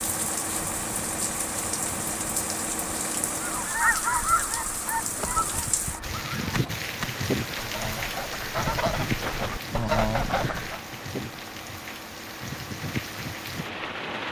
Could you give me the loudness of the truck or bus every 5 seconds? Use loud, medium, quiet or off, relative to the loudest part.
loud, medium, medium.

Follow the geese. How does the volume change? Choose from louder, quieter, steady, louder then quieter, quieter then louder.
quieter then louder.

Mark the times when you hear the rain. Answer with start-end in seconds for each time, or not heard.
0.0-14.2.